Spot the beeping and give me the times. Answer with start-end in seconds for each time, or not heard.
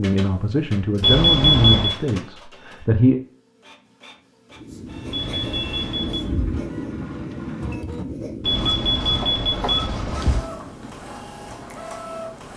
1.0-1.9, 5.1-6.3, 8.4-10.4.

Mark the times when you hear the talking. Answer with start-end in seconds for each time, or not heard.
0.0-3.2.